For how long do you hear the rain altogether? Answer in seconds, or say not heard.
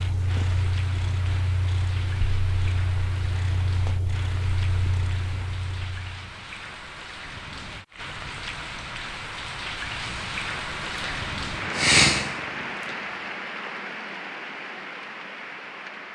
16 s.